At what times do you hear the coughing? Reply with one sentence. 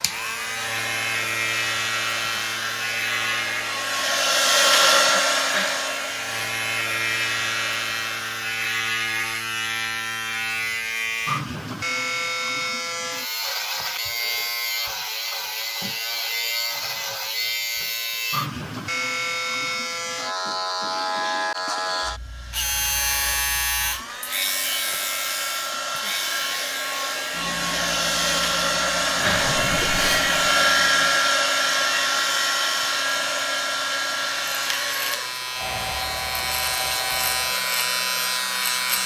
You can't hear the coughing here.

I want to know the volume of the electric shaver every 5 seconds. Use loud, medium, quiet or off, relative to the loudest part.
loud, loud, loud, loud, loud, medium, medium, loud.